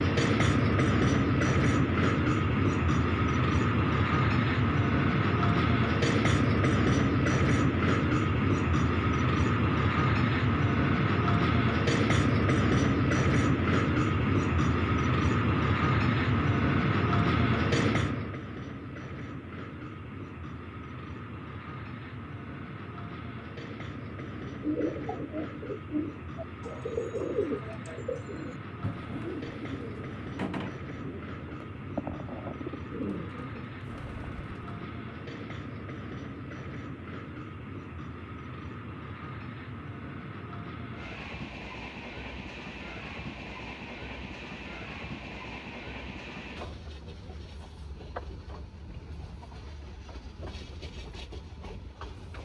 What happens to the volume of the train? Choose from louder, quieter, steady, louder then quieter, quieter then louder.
quieter.